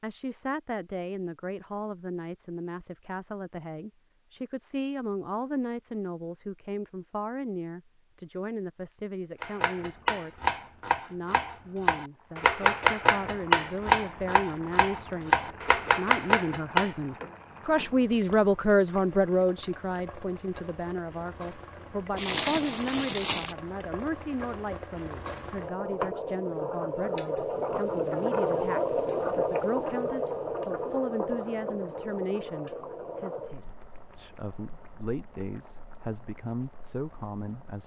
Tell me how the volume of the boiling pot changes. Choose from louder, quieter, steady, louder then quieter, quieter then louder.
louder then quieter.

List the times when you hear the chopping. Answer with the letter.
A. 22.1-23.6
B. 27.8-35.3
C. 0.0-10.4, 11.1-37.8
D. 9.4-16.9
D.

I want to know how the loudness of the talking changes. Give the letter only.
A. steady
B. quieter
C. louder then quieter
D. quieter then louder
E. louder
C.